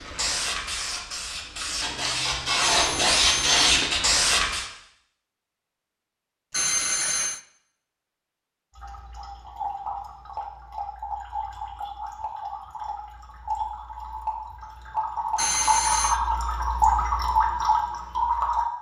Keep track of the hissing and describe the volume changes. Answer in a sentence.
The loudness of the hissing goes up.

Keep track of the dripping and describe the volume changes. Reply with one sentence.
The volume of the dripping goes up.